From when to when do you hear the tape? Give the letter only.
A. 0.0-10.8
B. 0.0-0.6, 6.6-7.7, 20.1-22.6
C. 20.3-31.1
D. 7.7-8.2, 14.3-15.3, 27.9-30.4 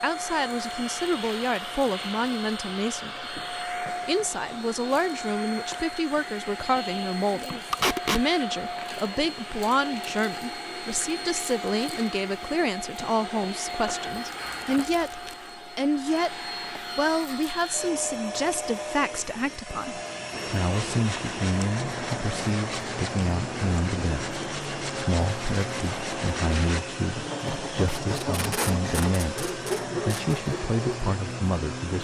D.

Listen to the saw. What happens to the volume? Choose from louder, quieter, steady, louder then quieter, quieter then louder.
steady.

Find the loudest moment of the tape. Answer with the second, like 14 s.
8 s.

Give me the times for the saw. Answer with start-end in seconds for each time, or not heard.
20.3-31.1.